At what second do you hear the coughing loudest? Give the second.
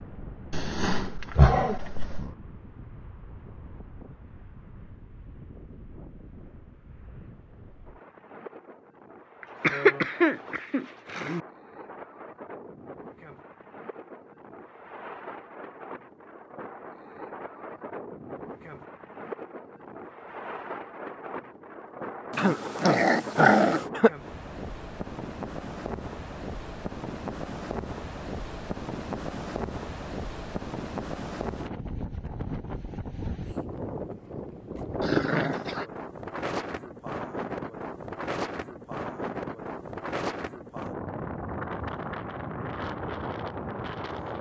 10 s.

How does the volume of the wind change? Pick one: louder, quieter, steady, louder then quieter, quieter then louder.
louder.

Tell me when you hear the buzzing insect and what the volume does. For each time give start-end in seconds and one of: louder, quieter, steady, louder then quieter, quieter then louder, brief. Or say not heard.
not heard.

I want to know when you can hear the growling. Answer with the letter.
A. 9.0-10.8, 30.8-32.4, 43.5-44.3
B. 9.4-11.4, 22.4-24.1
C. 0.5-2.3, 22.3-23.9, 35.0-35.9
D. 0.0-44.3
C.